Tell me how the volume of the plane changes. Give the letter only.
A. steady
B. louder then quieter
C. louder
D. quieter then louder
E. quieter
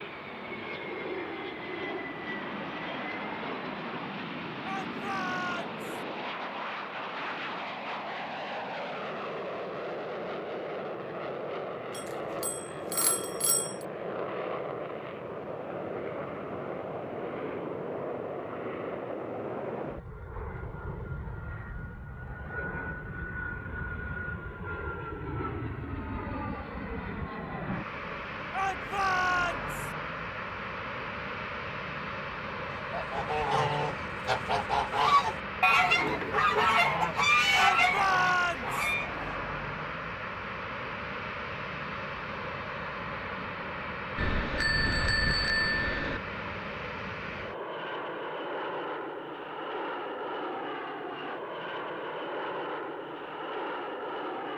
A.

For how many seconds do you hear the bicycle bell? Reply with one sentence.
The bicycle bell can be heard for 4 seconds in total.